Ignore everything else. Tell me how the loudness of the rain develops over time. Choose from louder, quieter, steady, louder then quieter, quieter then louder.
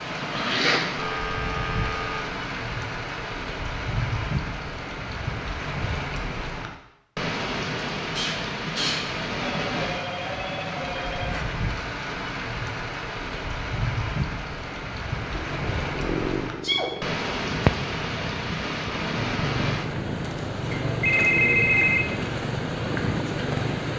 steady.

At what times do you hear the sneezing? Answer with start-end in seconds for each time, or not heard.
0.2-0.8, 8.2-9.0, 16.4-16.9.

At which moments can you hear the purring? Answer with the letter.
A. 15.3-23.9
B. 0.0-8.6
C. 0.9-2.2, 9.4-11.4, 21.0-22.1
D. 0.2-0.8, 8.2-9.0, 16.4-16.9
A.